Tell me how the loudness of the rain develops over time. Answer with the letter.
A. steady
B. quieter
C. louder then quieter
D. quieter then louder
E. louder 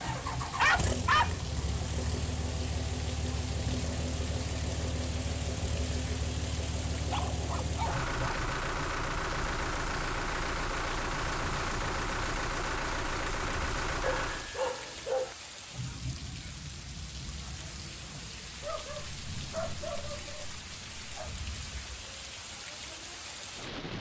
A.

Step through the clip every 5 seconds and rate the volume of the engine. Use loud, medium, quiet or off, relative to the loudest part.
loud, loud, loud, off, off.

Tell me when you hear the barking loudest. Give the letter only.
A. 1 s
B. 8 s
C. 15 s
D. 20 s
A.